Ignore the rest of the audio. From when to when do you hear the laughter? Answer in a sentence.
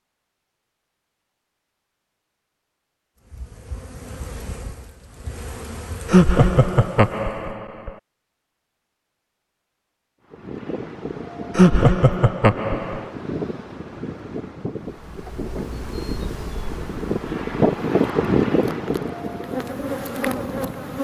You can hear the laughter from 6.0 to 7.9 s and from 11.6 to 13.1 s.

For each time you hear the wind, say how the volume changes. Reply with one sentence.
The wind can be heard from 10.3 to 20.9 s, getting louder then quieter.